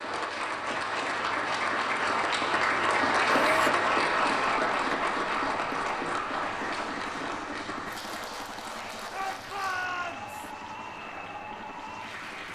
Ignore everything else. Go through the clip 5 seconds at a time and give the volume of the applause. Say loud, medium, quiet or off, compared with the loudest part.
loud, medium, quiet.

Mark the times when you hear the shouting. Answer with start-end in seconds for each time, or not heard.
3.3-3.7, 9.1-10.3.